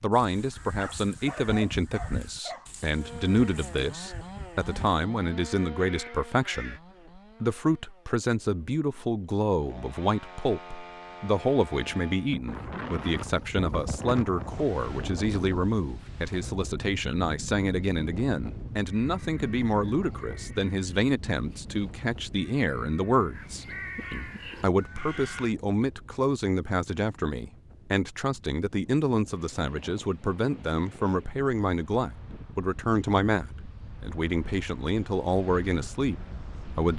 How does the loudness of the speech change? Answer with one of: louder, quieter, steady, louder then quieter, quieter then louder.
steady.